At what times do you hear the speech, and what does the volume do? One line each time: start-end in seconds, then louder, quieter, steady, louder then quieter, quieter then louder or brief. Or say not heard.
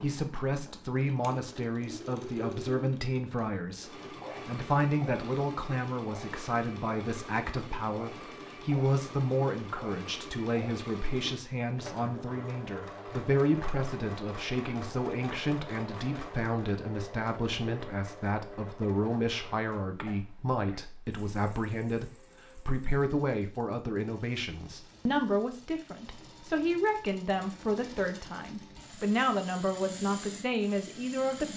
0.0-31.5 steady.